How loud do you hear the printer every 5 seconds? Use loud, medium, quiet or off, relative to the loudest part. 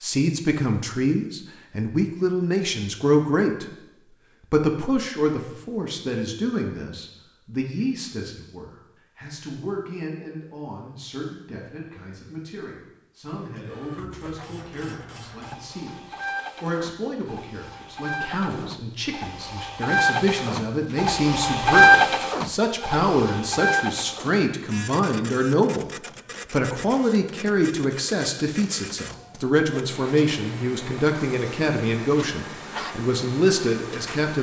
off, off, quiet, quiet, loud, quiet, quiet.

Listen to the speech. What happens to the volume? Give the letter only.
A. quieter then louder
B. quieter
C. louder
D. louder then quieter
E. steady
A.